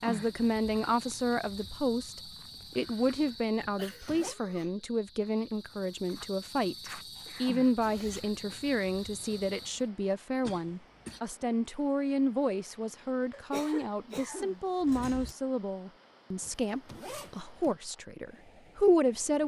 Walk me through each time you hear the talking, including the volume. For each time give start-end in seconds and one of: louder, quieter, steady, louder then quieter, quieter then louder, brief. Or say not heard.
0.0-19.4 steady.